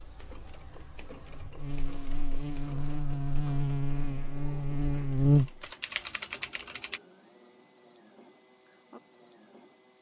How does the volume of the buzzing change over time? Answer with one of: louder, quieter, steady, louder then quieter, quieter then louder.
louder.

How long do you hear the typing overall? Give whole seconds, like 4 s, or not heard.
2 s.